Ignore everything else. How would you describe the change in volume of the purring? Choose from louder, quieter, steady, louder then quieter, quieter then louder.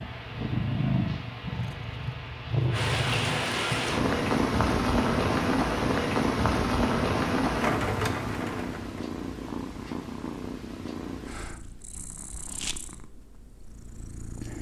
quieter.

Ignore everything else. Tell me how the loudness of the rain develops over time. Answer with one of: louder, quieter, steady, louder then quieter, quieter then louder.
louder.